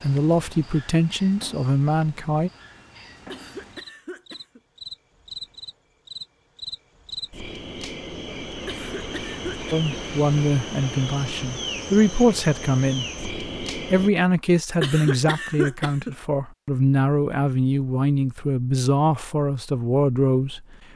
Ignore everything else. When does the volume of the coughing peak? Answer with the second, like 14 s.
15 s.